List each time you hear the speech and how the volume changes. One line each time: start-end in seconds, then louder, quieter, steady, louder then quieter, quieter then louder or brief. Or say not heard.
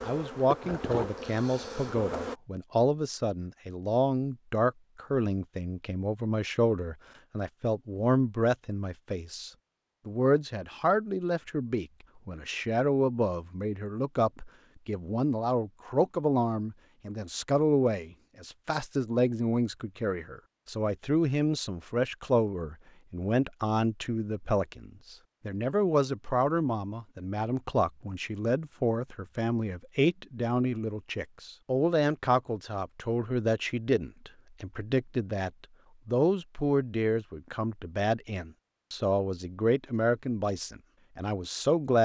0.0-42.0 steady.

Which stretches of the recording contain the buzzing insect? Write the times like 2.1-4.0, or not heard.
0.0-2.4.